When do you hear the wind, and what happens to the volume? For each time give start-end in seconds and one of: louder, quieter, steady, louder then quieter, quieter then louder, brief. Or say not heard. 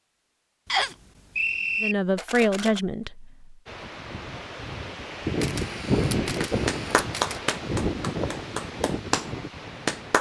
3.6-10.1 louder then quieter.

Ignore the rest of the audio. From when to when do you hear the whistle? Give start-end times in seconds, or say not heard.
0.7-1.9.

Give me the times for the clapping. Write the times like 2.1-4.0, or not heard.
6.4-10.1.